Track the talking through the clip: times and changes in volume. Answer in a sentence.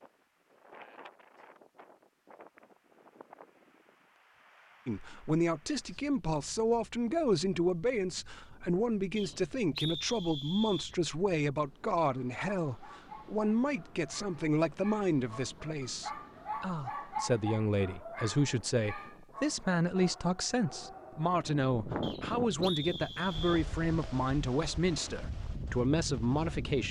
You can hear the talking from 4.8 to 26.8 s, at a steady volume.